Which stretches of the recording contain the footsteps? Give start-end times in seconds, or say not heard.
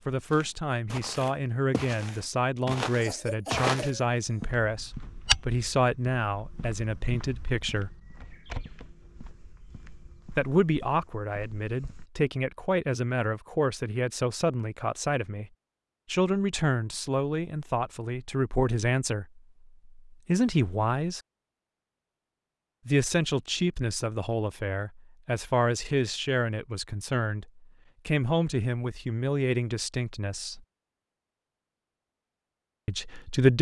0.3-12.2.